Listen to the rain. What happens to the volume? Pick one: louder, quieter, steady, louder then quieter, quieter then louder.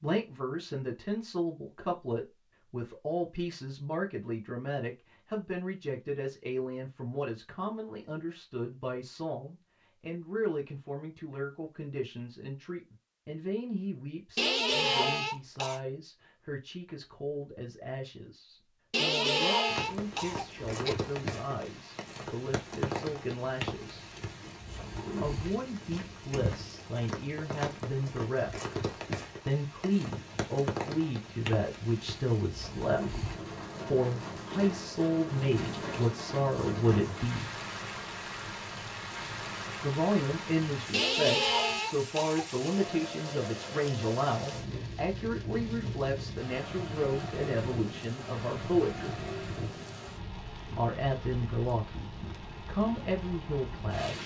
steady.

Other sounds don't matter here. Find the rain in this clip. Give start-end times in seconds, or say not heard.
19.6-54.2.